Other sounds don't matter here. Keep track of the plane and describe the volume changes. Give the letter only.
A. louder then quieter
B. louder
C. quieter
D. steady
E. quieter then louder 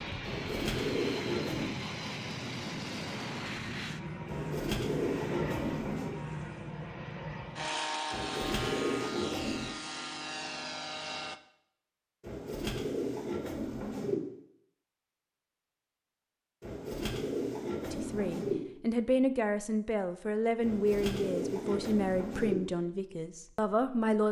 D.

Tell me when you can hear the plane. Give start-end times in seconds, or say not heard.
0.0-11.4.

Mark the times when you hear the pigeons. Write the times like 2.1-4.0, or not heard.
0.2-1.8, 4.2-6.2, 8.1-9.8, 12.2-14.2, 16.6-18.6, 20.6-22.6.